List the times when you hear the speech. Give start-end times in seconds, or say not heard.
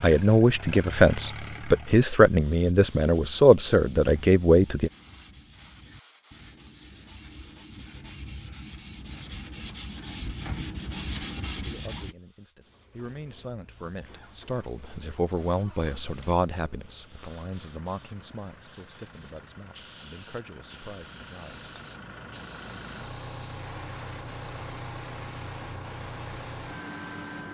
0.0-4.9, 11.6-21.7.